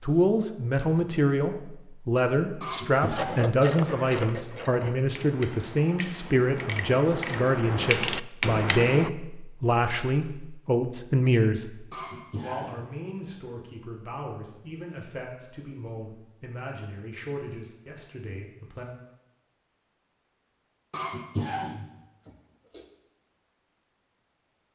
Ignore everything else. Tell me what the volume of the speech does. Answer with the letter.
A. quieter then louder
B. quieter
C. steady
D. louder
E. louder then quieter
B.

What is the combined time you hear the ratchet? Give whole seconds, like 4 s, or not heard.
6 s.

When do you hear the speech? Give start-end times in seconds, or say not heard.
0.0-18.9.